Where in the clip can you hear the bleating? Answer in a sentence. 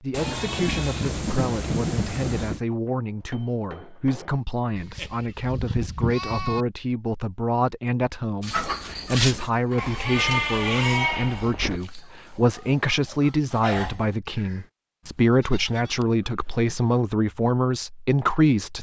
You can hear the bleating from 0.1 to 2.6 s, from 4.8 to 6.7 s, from 9.8 to 11.8 s and from 15.0 to 17.1 s.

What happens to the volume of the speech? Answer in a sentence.
The loudness of the speech goes up.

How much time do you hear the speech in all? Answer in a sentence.
The speech can be heard for 19 seconds in total.